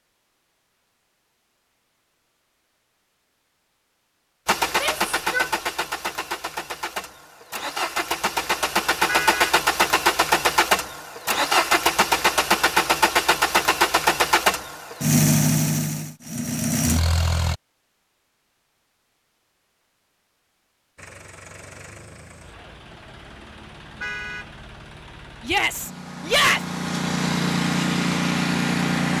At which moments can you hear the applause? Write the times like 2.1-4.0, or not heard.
not heard.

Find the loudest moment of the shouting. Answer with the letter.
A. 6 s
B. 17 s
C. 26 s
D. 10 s
C.